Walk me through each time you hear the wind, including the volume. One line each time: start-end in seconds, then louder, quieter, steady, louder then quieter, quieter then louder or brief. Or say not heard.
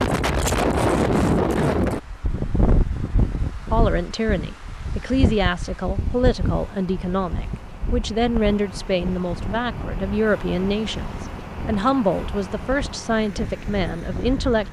0.0-14.6 quieter.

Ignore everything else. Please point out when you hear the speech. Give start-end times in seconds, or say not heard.
3.7-14.6.